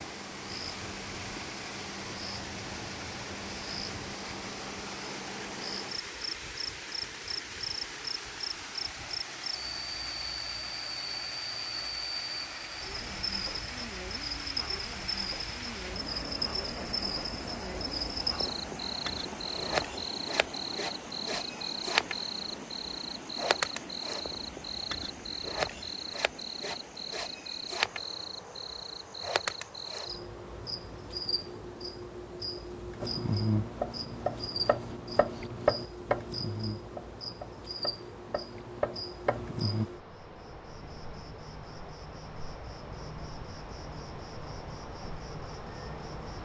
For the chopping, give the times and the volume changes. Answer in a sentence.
You can hear the chopping from 33.0 to 39.9 s, getting quieter then louder.